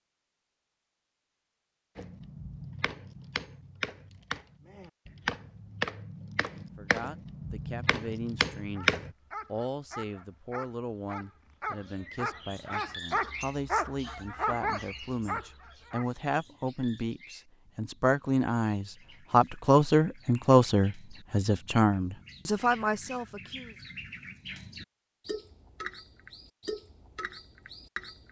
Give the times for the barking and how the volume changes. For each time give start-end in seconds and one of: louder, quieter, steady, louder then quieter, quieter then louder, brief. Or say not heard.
8.7-16.1 louder.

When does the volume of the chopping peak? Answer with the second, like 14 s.
9 s.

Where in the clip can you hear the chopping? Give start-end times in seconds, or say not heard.
1.9-9.1.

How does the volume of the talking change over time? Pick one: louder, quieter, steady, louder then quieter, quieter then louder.
louder.